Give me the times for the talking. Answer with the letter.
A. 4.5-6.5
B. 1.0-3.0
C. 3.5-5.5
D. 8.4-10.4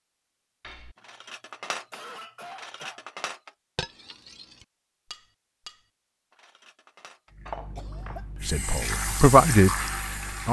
D.